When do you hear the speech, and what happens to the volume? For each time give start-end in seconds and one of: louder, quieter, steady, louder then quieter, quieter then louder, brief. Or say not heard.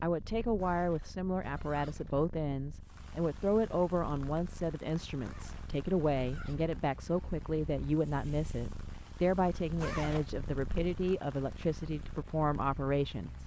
0.0-13.4 steady.